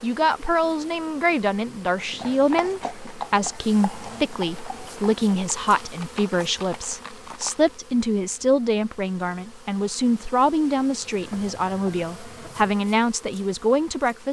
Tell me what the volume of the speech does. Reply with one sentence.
The loudness of the speech stays about the same.